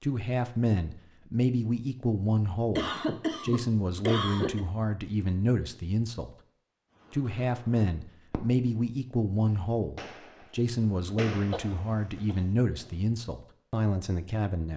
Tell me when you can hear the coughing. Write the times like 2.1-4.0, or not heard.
2.8-4.7, 11.5-12.3.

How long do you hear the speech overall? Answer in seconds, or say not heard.
14 s.